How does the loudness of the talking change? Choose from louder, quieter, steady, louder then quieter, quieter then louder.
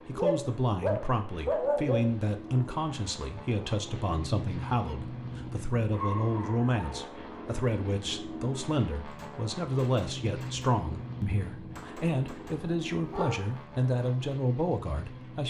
steady.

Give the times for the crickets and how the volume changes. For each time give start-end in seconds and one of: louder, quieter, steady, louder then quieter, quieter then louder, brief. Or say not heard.
not heard.